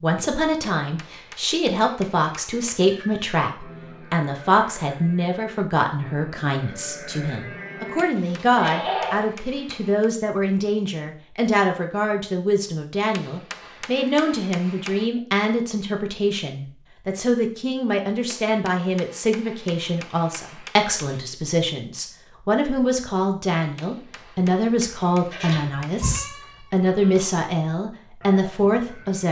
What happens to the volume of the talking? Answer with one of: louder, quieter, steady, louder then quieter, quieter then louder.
steady.